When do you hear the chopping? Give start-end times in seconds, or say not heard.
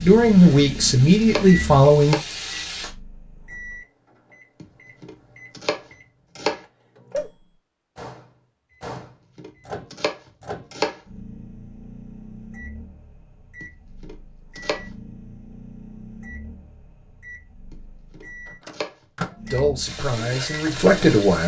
0.2-2.2, 4.6-6.6, 8.9-11.0, 13.6-14.8, 17.7-19.6.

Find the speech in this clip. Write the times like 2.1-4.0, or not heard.
0.0-2.1, 19.5-21.4.